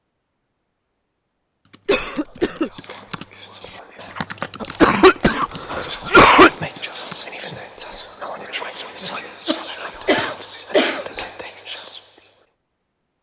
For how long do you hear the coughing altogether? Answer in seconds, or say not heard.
4 s.